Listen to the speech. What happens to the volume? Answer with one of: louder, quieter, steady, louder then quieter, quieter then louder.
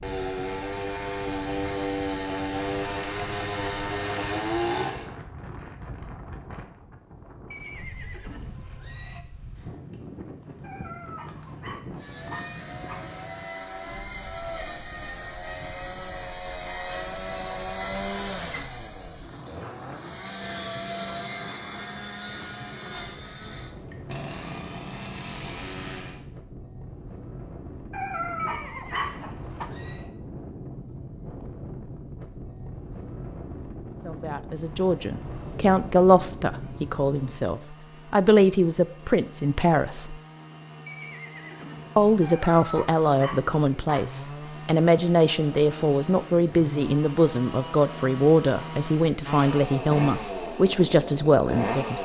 steady.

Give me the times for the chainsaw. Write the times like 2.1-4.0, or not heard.
0.0-5.1, 11.9-26.2, 34.4-52.0.